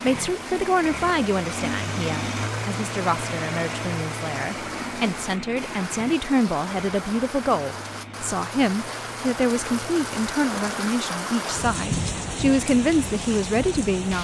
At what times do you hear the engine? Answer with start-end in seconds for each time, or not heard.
0.0-10.8.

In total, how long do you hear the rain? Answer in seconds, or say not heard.
14 s.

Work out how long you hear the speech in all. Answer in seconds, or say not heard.
14 s.